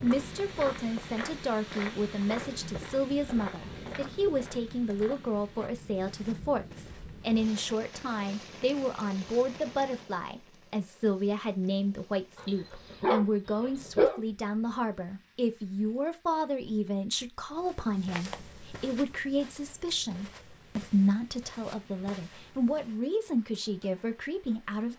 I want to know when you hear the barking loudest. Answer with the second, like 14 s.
14 s.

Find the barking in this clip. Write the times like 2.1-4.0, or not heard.
12.3-14.2.